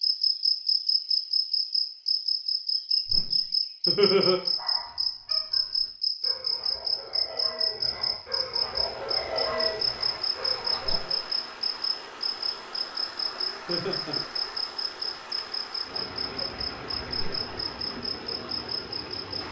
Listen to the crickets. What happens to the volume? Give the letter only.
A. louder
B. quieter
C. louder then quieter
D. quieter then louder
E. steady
B.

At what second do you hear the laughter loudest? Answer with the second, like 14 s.
4 s.